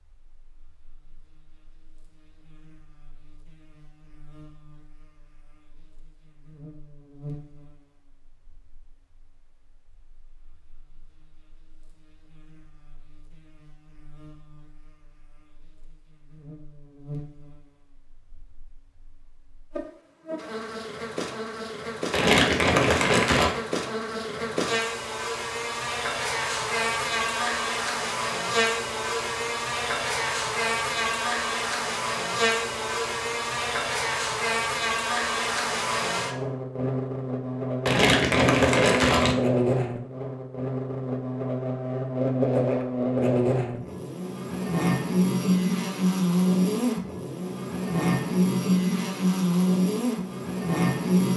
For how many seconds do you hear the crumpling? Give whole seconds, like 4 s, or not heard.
3 s.